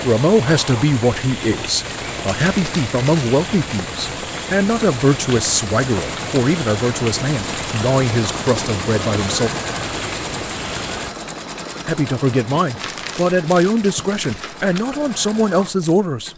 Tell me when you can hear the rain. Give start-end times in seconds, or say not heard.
0.0-11.2.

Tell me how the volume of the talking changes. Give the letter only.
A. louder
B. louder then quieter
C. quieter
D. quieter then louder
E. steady
E.